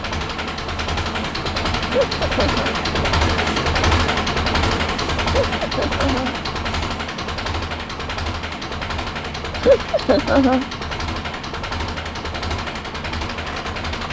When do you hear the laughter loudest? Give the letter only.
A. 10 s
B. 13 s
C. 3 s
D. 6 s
A.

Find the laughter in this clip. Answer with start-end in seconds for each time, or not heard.
1.9-2.7, 5.4-6.3, 9.6-10.7.